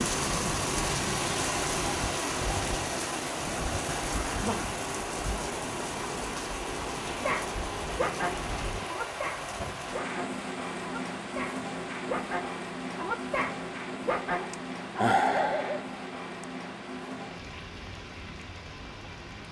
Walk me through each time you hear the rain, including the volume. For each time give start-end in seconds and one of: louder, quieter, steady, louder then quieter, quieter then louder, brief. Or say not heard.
0.0-19.4 quieter.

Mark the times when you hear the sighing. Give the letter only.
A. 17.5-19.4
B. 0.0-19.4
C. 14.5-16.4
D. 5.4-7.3
C.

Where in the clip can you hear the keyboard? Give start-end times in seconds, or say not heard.
not heard.